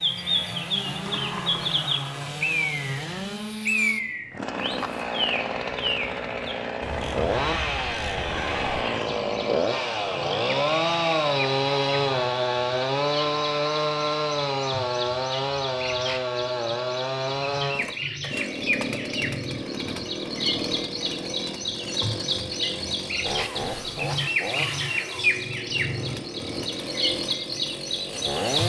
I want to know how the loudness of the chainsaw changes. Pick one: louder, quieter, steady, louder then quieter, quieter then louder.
louder then quieter.